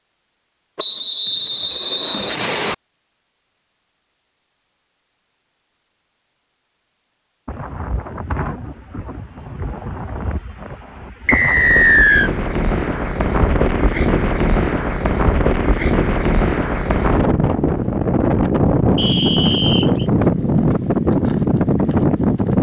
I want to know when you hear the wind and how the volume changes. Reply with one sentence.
You can hear the wind from 7.5 to 22.5 s, getting louder.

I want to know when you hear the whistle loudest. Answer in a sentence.
The volume of the whistle peaks at 12 seconds.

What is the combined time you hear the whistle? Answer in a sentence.
You can hear the whistle for 4 seconds altogether.